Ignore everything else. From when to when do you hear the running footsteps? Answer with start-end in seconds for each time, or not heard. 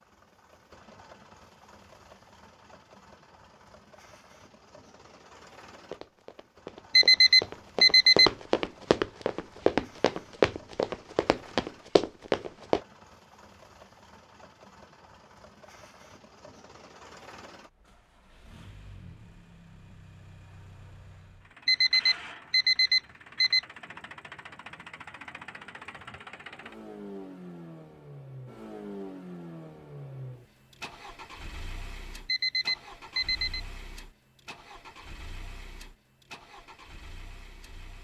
5.9-12.8.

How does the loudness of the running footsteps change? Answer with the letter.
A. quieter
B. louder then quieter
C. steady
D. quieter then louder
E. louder
E.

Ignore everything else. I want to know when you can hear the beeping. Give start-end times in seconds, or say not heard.
7.0-8.3, 21.6-23.6, 32.2-33.6.